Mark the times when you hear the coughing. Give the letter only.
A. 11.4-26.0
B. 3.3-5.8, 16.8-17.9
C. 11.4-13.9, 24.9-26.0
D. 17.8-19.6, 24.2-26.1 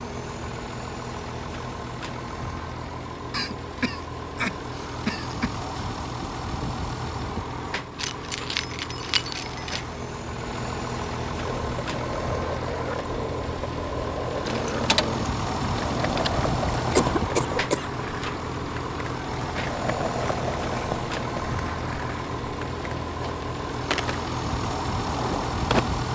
B.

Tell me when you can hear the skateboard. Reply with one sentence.
You can hear the skateboard from 11.4 to 26.0 s.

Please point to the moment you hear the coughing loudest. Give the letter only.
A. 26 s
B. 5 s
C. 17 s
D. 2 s
C.